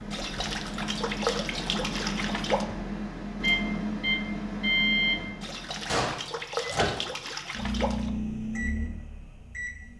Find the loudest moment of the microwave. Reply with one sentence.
The loudest moment of the microwave is at 5 seconds.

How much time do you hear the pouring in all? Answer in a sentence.
You can hear the pouring for 5 seconds altogether.